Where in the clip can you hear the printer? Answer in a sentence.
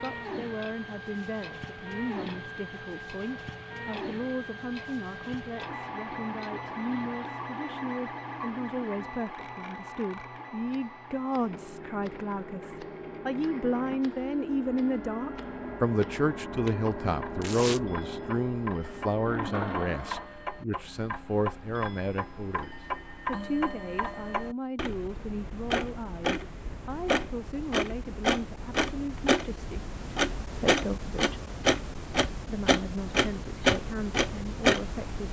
The printer can be heard from 0.0 to 20.4 s.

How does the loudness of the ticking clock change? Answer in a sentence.
The volume of the ticking clock goes up.